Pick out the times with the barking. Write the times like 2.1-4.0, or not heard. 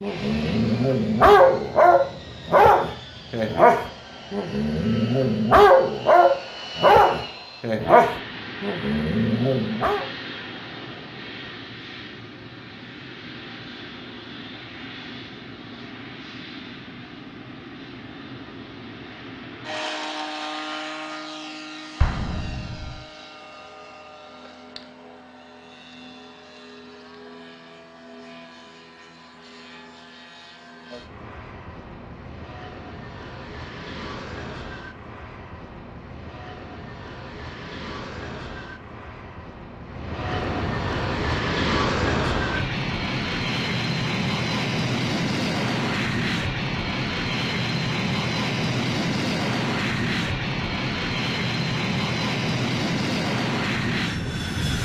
0.0-10.1.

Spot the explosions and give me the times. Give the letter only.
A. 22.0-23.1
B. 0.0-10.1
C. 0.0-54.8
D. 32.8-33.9
A.